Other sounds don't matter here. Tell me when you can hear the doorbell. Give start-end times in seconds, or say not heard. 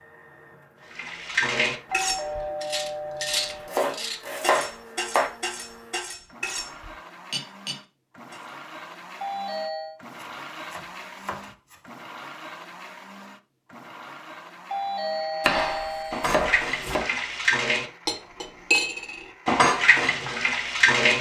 1.9-3.7, 9.2-9.9, 14.7-16.2.